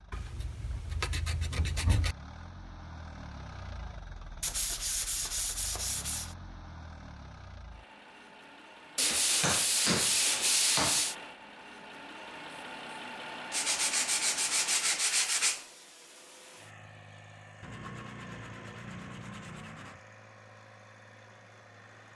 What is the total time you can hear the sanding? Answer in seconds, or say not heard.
11 s.